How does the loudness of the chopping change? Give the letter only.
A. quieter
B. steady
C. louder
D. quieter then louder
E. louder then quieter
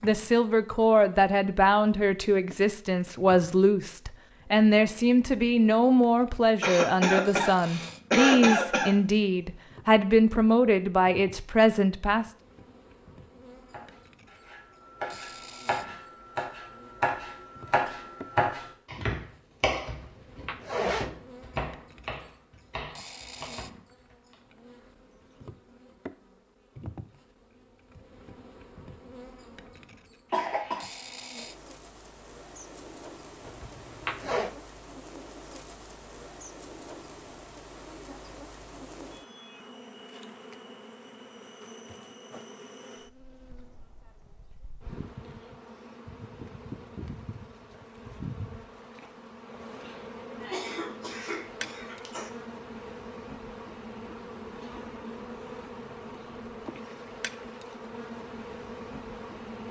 E.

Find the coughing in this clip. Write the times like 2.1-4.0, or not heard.
6.6-8.9, 30.3-30.9, 50.4-52.3.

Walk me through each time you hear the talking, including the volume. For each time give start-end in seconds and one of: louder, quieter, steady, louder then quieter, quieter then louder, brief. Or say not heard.
0.0-12.3 steady.